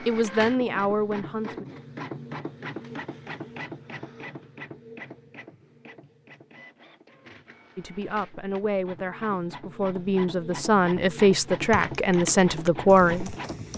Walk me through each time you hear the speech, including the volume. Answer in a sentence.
You can hear the speech briefly from 0.1 to 1.6 s; and from 7.8 to 13.3 s, getting louder.